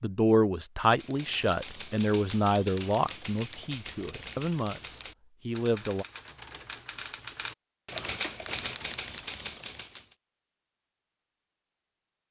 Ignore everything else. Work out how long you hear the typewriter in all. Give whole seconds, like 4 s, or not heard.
9 s.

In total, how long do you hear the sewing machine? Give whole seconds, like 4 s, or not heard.
not heard.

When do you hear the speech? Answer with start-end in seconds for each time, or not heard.
0.0-6.0.